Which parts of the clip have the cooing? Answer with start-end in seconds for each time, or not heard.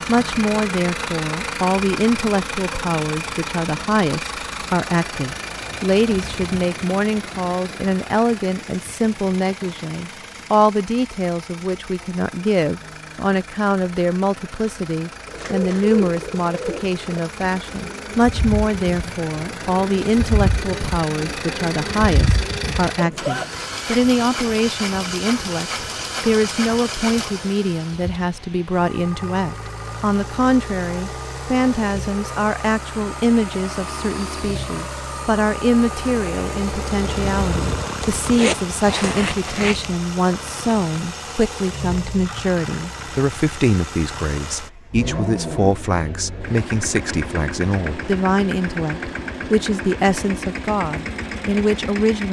15.2-23.5.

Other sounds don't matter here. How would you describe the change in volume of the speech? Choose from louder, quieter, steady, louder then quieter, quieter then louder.
steady.